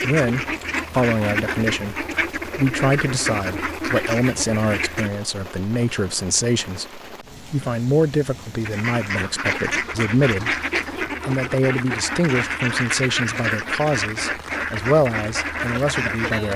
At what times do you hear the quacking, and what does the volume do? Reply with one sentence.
You can hear the quacking from 0.0 to 5.1 s, at a steady volume; and from 8.7 to 16.5 s, at a steady volume.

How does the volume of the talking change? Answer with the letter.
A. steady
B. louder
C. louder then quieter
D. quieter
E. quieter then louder
A.